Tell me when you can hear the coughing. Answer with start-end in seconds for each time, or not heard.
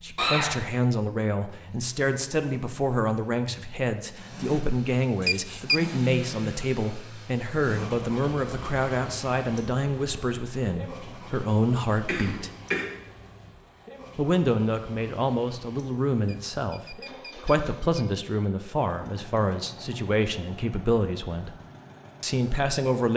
0.1-0.6, 12.1-12.8.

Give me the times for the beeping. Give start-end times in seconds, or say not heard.
5.2-5.8, 16.2-18.1.